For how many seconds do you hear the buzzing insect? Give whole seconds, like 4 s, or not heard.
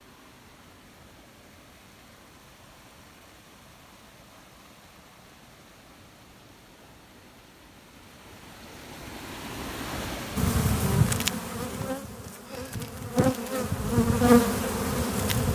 5 s.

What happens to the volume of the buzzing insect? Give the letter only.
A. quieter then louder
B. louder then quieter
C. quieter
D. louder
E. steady
A.